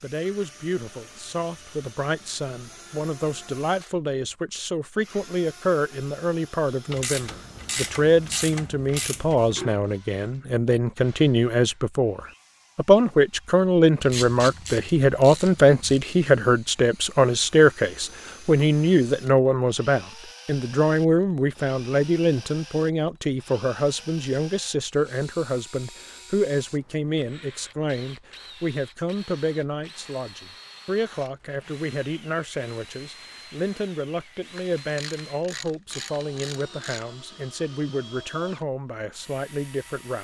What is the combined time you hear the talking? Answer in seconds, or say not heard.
40 s.